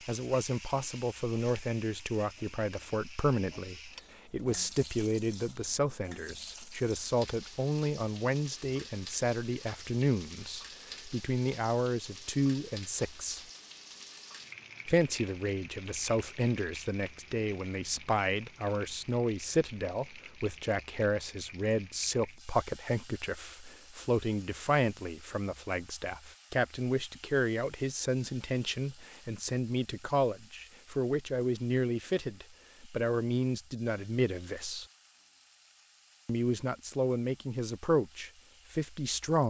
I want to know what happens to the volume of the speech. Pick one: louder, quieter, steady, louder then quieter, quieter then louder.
steady.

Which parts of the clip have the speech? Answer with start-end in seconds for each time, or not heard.
0.1-13.4, 14.8-34.9, 36.2-39.4.